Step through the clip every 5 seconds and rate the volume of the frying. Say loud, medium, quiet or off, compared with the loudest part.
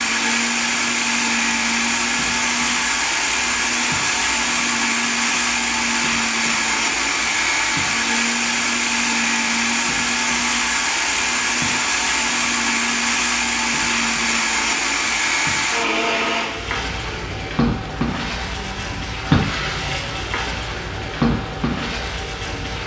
quiet, quiet, quiet, loud, loud.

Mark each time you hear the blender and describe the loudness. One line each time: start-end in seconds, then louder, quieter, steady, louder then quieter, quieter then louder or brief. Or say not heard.
0.0-22.8 quieter.